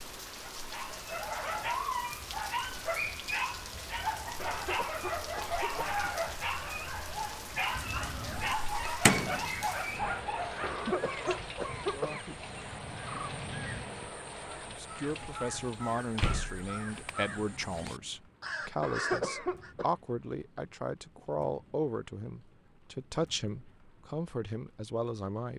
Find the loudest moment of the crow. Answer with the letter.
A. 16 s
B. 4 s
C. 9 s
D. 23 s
C.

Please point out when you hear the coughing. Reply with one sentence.
The coughing can be heard from 4.3 to 6.2 s, from 10.6 to 12.4 s and from 18.8 to 19.9 s.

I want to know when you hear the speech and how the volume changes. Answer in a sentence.
The speech can be heard from 14.7 to 25.5 s, at a steady volume.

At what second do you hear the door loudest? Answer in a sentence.
The volume of the door peaks at 16 seconds.